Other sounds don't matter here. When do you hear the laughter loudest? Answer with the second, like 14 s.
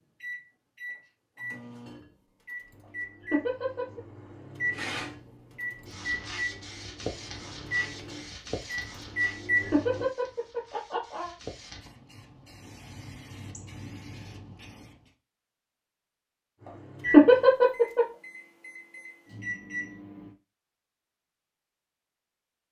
17 s.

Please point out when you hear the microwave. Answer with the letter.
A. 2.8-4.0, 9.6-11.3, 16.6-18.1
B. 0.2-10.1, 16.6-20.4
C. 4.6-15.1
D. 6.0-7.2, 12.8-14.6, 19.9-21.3
B.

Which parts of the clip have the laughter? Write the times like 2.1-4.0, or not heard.
2.8-4.0, 9.6-11.3, 16.6-18.1.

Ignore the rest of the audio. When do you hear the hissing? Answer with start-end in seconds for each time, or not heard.
4.6-15.1.